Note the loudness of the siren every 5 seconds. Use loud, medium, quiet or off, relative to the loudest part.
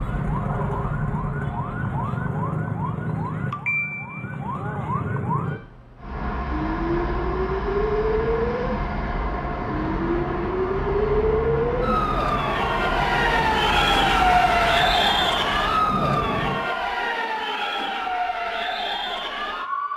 medium, medium, loud, loud.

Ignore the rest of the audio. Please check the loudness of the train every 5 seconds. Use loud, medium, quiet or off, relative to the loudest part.
medium, loud, loud, loud.